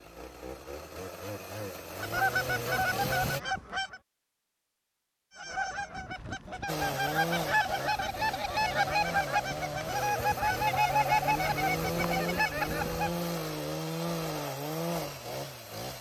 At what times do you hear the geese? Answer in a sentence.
The geese can be heard from 1.9 to 4.0 s and from 5.3 to 13.2 s.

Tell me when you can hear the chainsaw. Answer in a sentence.
The chainsaw can be heard from 0.0 to 3.4 s and from 6.7 to 15.9 s.